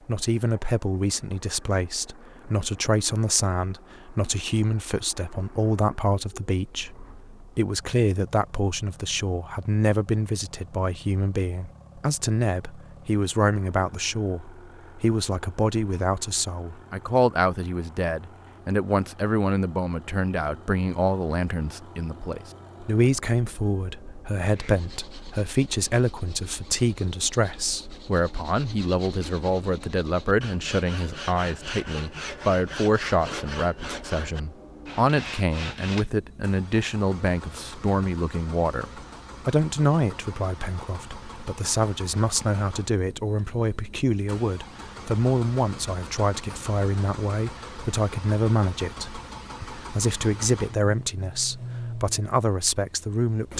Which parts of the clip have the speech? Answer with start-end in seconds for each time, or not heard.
0.1-53.5.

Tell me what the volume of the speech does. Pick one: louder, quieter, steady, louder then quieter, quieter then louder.
steady.